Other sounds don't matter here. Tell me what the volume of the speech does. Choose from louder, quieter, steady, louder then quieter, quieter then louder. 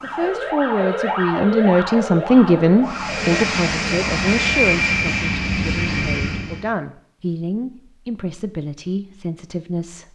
quieter.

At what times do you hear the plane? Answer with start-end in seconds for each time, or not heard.
2.9-6.7.